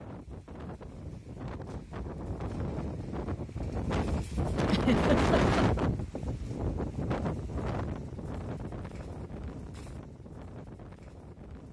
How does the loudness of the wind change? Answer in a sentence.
The volume of the wind goes up, then down.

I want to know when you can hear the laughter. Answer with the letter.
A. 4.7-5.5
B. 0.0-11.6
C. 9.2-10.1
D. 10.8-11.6
A.